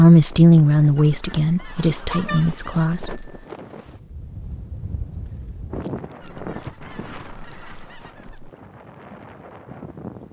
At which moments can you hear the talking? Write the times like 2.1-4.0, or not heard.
0.0-3.3.